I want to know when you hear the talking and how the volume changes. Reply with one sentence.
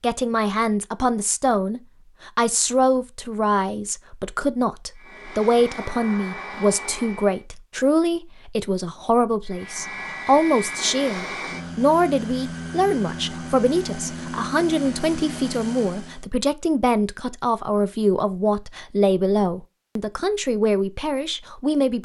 The talking can be heard from 0.0 to 22.0 s, at a steady volume.